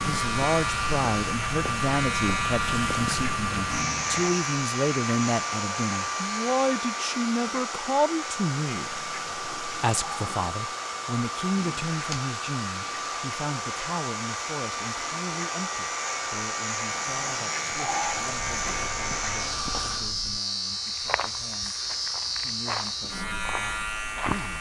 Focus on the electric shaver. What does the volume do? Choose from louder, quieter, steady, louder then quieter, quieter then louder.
quieter then louder.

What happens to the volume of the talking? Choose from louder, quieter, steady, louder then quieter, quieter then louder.
quieter.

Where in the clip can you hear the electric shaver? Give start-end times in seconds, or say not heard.
0.0-24.5.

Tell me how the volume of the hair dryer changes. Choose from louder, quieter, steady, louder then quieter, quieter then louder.
quieter.